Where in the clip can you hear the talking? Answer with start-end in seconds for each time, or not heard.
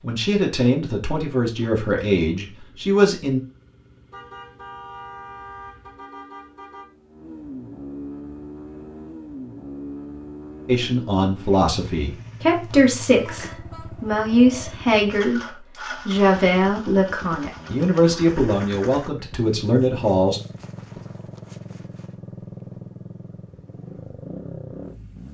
0.0-3.4, 10.7-15.4, 16.1-20.4.